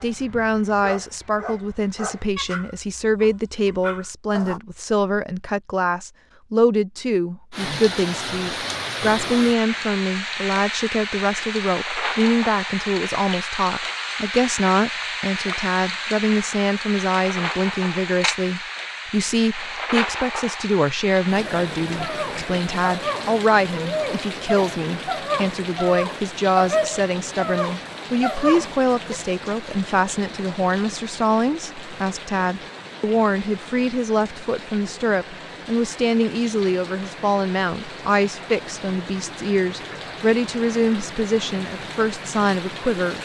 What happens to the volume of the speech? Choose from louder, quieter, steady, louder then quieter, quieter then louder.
steady.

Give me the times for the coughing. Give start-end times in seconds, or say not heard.
not heard.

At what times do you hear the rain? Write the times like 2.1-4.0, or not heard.
7.5-43.2.